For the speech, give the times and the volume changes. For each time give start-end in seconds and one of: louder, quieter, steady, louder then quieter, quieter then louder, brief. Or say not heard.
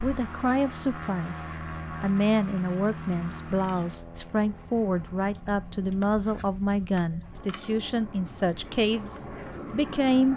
0.0-10.3 steady.